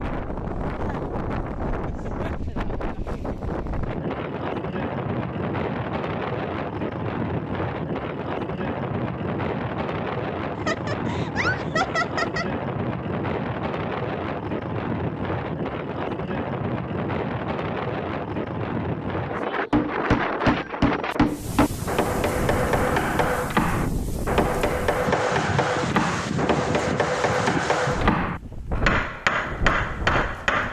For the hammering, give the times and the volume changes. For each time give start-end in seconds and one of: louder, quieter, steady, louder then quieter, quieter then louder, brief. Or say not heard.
19.7-30.6 steady.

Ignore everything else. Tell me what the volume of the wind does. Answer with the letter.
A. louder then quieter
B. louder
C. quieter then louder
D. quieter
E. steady
E.